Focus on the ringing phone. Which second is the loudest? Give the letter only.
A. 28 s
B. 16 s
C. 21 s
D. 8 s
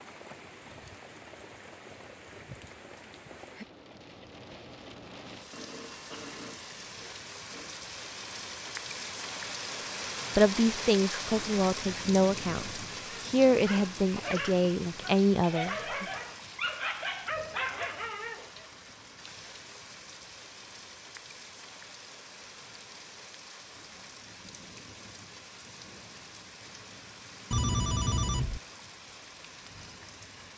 A.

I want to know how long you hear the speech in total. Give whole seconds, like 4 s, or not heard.
6 s.